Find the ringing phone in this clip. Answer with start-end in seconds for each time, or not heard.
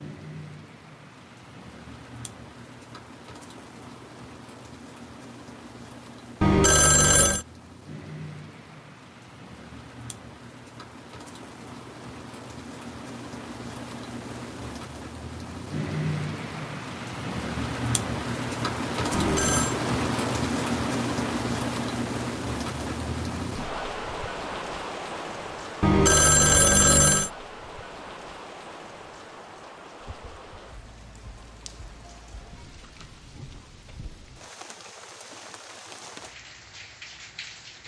6.4-7.5, 19.1-19.8, 25.8-27.3.